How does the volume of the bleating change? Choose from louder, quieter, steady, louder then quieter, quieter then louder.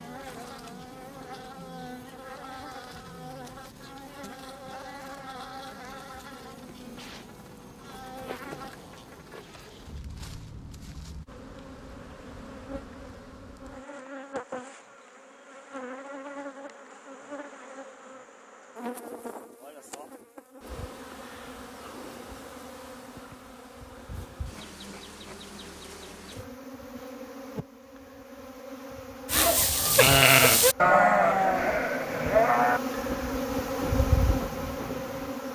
quieter.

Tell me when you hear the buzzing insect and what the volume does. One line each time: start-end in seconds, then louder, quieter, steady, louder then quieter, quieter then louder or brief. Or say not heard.
0.0-35.5 louder.